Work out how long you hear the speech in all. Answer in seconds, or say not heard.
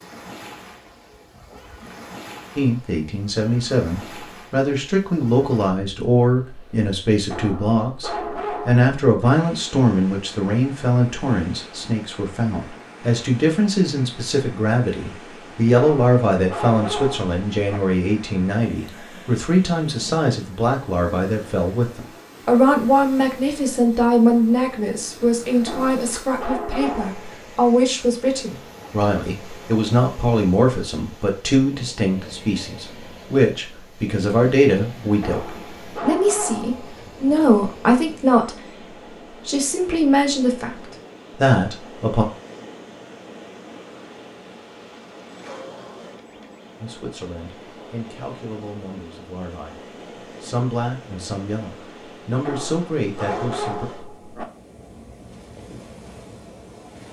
46 s.